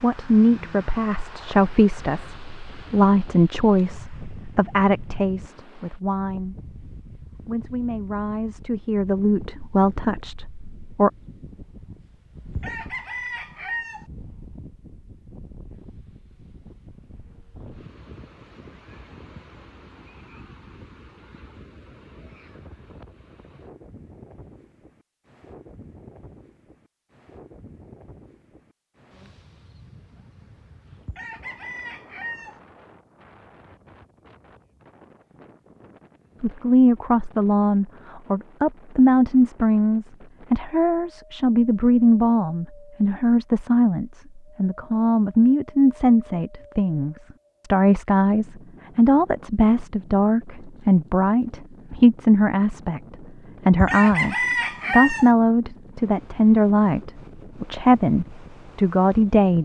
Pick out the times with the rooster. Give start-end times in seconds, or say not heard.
12.6-14.1, 31.1-32.6, 53.8-55.3.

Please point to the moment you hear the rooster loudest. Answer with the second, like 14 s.
55 s.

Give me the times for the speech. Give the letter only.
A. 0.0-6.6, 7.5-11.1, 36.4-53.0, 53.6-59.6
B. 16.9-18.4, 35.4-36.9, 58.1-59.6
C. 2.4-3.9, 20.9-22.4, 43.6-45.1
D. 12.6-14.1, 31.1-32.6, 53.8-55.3
A.